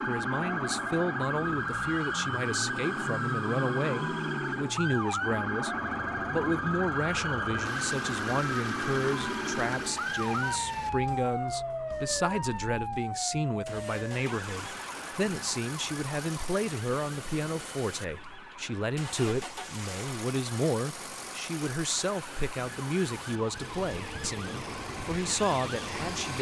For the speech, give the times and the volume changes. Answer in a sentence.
The speech can be heard from 0.1 to 26.3 s, at a steady volume.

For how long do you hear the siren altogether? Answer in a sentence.
You can hear the siren for 26 seconds altogether.